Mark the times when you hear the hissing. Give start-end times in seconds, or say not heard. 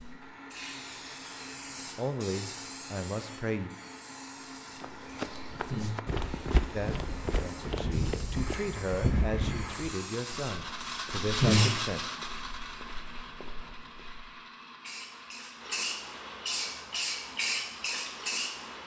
0.0-11.8, 14.8-18.8.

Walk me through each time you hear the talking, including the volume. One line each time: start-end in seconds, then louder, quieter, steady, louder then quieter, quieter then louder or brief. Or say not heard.
1.9-3.7 brief
6.7-12.0 louder.